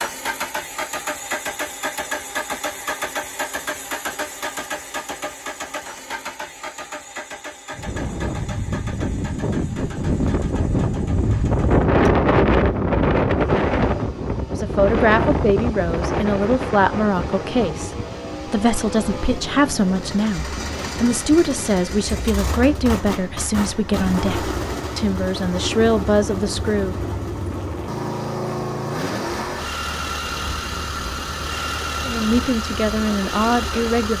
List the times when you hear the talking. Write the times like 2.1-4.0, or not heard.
14.5-26.9, 32.0-34.1.